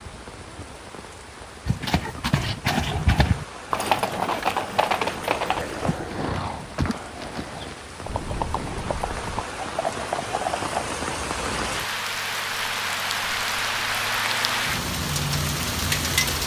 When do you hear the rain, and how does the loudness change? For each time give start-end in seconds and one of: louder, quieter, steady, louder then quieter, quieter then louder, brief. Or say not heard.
0.0-16.4 louder.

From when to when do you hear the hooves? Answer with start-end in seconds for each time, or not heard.
1.6-10.8.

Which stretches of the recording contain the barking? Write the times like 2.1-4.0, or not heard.
5.5-6.3.